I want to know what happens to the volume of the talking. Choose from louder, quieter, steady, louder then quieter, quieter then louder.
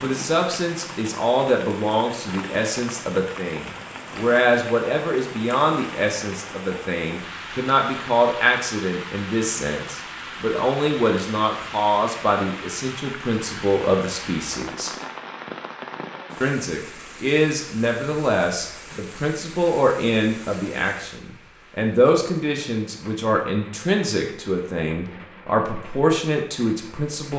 steady.